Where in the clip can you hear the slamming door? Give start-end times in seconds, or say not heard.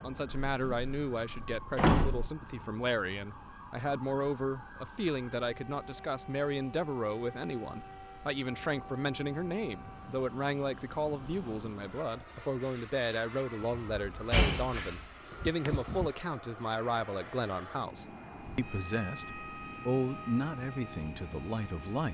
0.5-2.3, 13.6-16.1.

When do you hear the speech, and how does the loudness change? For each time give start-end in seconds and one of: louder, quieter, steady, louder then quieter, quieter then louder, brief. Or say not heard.
0.0-22.0 steady.